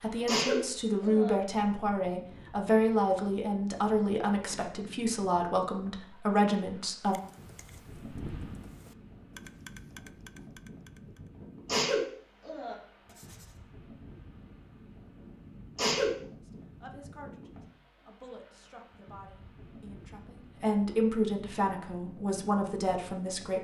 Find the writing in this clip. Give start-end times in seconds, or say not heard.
13.1-13.6.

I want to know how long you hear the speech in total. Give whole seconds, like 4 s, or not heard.
14 s.